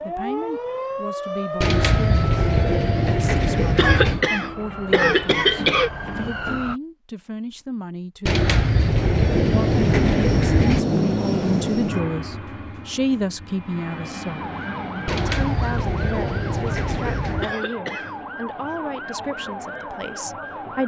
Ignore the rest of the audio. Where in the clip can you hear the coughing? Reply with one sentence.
You can hear the coughing from 3.8 to 5.9 s and from 17.4 to 18.1 s.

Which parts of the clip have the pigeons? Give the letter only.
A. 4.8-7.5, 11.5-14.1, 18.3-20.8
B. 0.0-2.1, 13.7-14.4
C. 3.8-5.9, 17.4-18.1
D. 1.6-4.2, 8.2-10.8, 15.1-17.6
D.